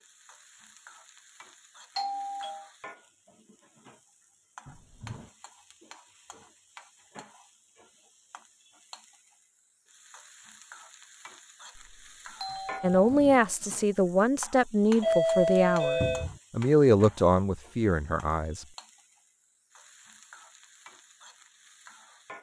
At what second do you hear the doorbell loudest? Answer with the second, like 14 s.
15 s.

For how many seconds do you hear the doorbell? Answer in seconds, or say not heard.
3 s.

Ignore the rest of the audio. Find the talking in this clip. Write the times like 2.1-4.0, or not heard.
12.8-18.6.